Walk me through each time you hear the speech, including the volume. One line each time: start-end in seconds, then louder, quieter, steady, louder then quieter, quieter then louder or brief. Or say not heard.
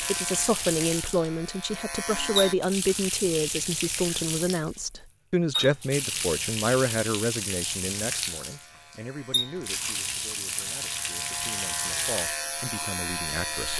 0.0-13.7 quieter.